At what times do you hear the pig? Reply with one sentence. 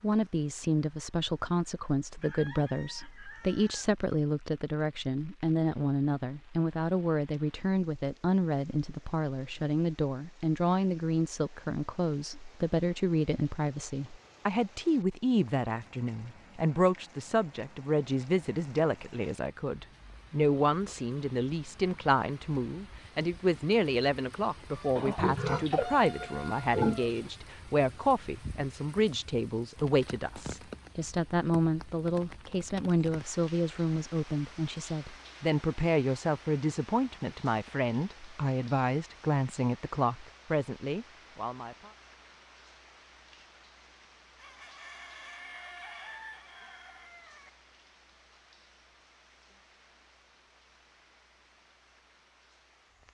You can hear the pig from 24.9 to 27.1 s.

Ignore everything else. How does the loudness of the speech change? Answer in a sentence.
The volume of the speech stays about the same.